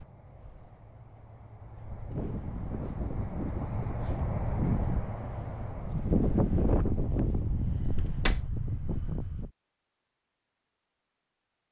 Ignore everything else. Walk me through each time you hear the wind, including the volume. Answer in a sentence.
The wind can be heard from 0.0 to 9.5 s, getting louder then quieter.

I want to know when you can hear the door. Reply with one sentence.
You can hear the door from 7.8 to 8.4 s.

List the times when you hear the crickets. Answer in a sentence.
You can hear the crickets from 0.0 to 8.5 s.